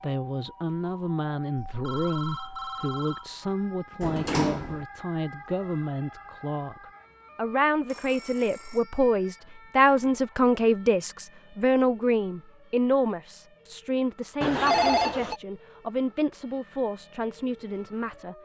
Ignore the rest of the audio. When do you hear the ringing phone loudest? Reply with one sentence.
The volume of the ringing phone peaks at 15 seconds.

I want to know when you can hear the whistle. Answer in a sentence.
The whistle can't be heard in this clip.